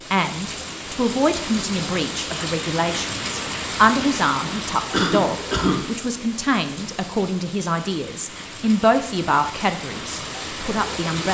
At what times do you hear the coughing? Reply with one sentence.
You can hear the coughing from 4.9 to 5.8 s.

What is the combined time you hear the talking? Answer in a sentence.
You can hear the talking for 11 seconds altogether.